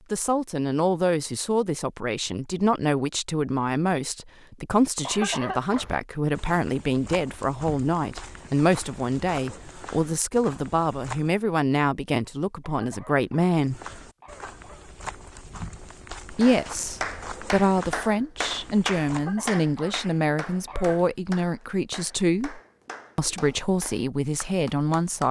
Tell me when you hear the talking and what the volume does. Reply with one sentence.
You can hear the talking from 0.1 to 13.8 s, at a steady volume; and from 16.3 to 25.2 s, at a steady volume.